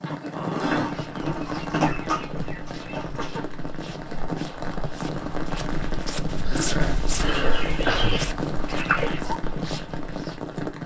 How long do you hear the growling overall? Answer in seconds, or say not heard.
3 s.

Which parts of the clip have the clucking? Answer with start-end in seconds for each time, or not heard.
0.6-3.4, 7.2-9.2.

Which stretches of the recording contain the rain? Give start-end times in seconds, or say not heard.
0.0-10.8.